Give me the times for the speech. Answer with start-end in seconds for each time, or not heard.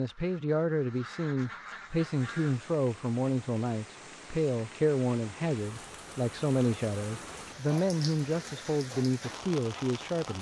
0.0-10.3.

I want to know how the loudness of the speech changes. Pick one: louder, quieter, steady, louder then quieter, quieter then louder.
steady.